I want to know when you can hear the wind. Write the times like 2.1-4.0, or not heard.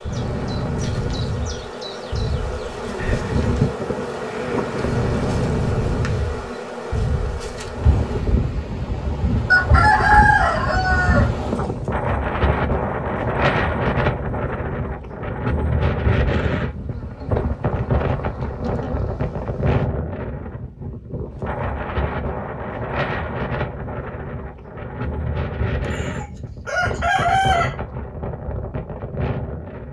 0.0-29.8.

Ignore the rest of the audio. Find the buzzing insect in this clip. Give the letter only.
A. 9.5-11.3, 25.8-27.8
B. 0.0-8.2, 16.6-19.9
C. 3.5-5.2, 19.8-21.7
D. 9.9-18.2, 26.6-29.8
B.